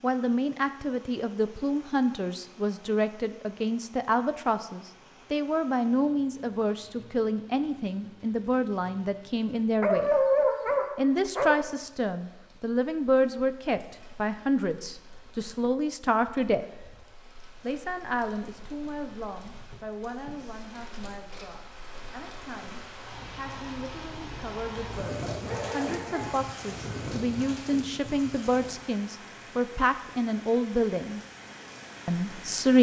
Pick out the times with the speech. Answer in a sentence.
The speech can be heard from 0.0 to 10.1 s, from 10.9 to 16.6 s, from 17.6 to 31.2 s and from 32.0 to 32.7 s.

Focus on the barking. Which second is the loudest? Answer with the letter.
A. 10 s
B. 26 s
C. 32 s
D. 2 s
A.